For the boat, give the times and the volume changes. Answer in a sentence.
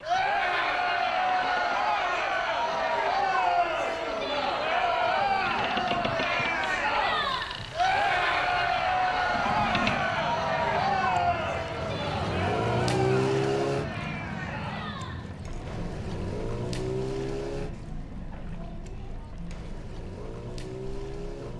You can hear the boat from 0.0 to 21.5 s, getting louder then quieter.